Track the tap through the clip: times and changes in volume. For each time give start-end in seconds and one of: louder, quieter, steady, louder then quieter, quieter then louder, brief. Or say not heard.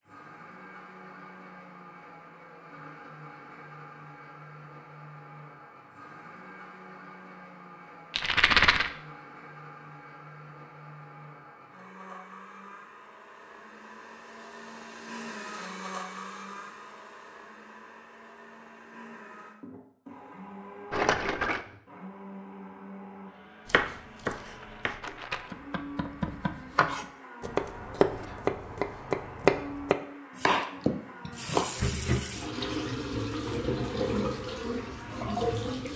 31.3-35.9 steady.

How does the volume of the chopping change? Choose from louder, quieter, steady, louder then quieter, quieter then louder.
louder.